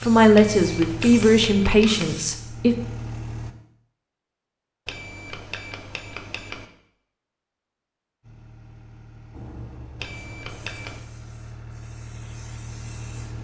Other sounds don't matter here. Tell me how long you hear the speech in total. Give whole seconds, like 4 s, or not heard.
3 s.